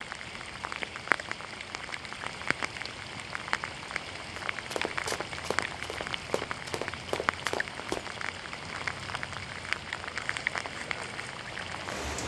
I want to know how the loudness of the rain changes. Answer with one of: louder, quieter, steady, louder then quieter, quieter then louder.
steady.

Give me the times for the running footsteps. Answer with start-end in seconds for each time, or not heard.
4.3-8.1.